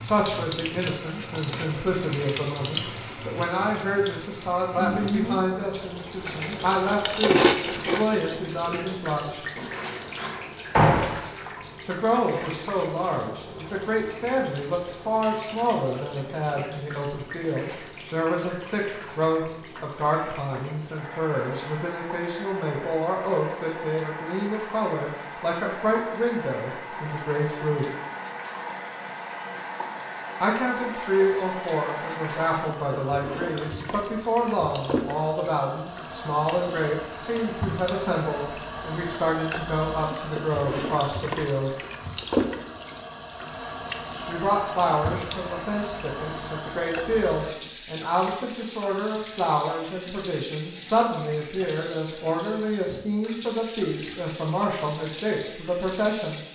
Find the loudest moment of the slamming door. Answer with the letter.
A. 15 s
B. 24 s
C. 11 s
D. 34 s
C.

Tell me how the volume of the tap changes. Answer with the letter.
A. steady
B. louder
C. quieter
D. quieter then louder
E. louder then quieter
D.